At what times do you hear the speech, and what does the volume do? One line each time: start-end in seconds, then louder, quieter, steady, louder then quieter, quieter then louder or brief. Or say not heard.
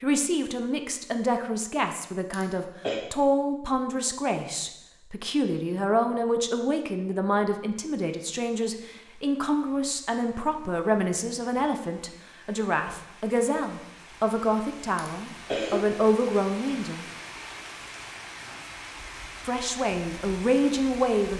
0.0-17.1 steady
19.4-21.3 brief.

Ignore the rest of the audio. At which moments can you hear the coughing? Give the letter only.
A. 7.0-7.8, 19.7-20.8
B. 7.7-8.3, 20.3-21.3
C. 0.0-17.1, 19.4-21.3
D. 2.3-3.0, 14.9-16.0
D.